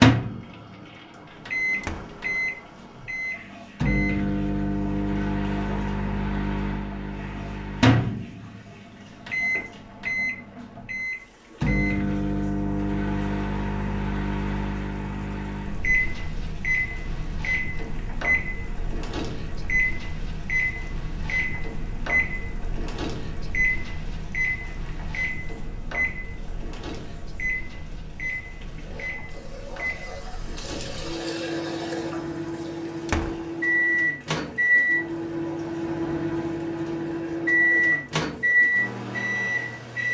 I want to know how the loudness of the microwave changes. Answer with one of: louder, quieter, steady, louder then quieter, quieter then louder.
quieter then louder.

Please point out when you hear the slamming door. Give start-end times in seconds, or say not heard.
1.8-2.2, 33.0-33.5.